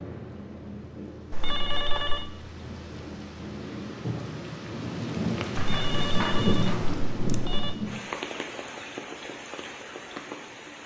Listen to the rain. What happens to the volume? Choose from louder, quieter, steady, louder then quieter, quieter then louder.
louder then quieter.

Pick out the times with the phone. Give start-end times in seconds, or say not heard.
1.3-2.3, 5.5-7.8.